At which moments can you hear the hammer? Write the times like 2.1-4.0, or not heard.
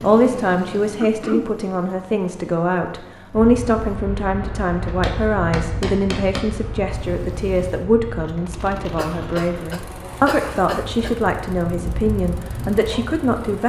4.8-6.5.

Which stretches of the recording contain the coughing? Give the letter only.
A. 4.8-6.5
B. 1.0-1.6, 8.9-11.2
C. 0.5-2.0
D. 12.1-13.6
B.